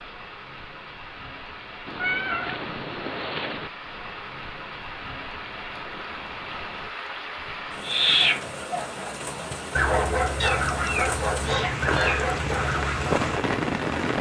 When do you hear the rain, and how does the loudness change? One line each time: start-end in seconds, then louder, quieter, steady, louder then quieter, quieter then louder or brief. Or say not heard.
0.0-14.1 louder.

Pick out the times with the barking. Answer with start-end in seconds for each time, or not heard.
7.8-13.2.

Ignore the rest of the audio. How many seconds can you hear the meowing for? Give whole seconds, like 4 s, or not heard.
4 s.